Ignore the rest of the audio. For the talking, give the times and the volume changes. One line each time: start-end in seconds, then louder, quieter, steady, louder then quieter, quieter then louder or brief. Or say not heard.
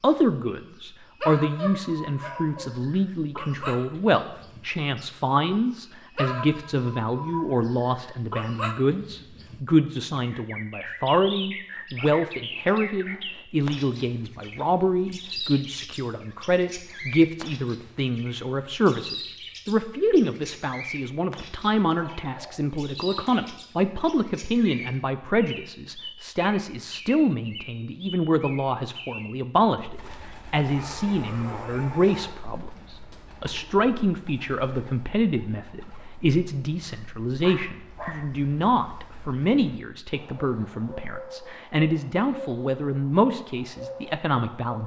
0.0-44.8 steady.